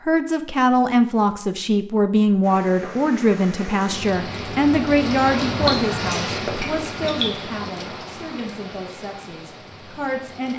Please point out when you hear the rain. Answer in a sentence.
The rain can be heard from 2.4 to 10.5 s.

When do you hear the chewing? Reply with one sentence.
You can hear the chewing from 5.7 to 7.3 s.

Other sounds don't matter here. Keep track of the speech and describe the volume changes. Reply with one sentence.
The loudness of the speech goes down.